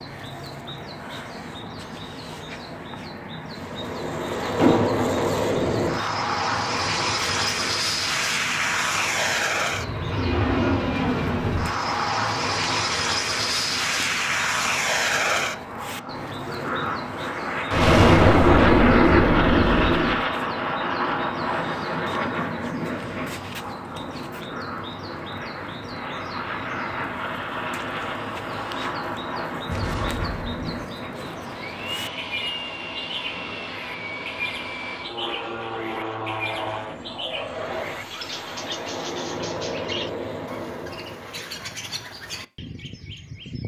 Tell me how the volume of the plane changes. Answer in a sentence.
The volume of the plane goes down.